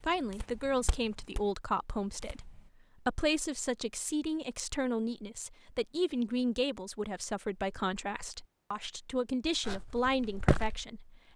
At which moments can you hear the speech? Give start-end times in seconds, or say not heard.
0.0-11.3.